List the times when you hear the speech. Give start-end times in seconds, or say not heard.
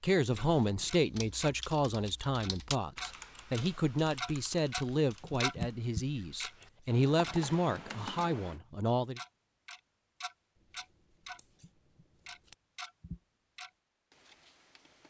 0.0-9.2.